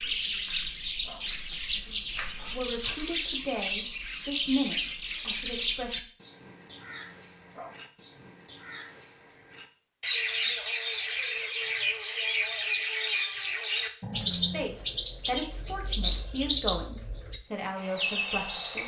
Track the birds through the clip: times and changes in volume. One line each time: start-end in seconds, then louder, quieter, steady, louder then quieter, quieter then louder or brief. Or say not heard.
0.0-18.8 steady.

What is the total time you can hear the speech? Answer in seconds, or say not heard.
8 s.